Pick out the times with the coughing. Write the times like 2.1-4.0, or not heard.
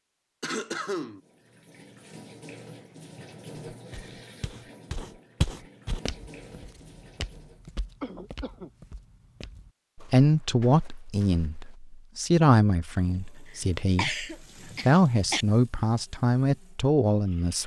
0.4-1.2, 8.0-8.7, 13.9-15.4.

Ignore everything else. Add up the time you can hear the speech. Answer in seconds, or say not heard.
7 s.